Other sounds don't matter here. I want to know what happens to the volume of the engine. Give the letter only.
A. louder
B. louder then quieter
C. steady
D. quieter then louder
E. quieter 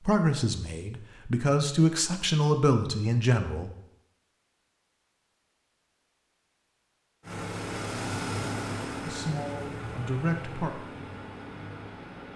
E.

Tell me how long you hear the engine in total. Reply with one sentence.
The engine can be heard for 5 seconds in total.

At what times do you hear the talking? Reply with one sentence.
You can hear the talking from 0.0 to 3.7 s and from 9.1 to 10.7 s.